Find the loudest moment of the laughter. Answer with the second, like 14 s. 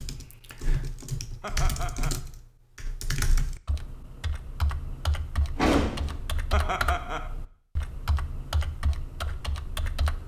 7 s.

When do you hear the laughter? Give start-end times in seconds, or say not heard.
1.4-2.2, 6.5-7.3.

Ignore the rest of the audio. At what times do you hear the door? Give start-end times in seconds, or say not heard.
5.5-6.2.